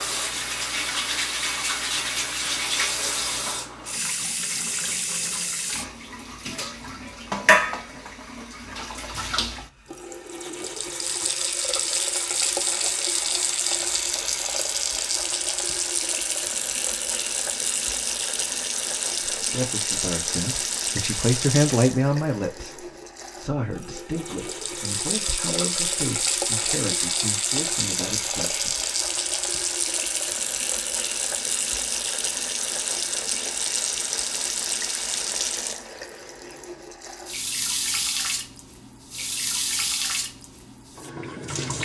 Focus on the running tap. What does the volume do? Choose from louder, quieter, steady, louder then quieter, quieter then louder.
steady.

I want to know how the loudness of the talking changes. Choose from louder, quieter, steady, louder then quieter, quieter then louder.
louder then quieter.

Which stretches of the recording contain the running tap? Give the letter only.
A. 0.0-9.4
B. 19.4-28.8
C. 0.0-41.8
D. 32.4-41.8
C.